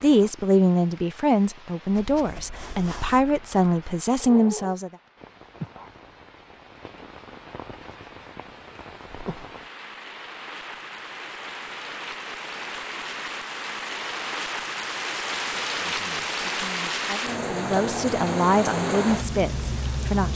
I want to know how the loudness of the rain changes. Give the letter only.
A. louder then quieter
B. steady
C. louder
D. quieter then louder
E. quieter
C.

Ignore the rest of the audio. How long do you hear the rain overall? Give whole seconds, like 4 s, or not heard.
20 s.